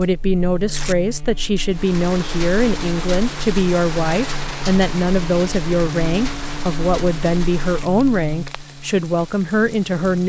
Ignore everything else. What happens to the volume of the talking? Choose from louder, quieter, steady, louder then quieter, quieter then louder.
steady.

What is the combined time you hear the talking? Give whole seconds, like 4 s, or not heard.
10 s.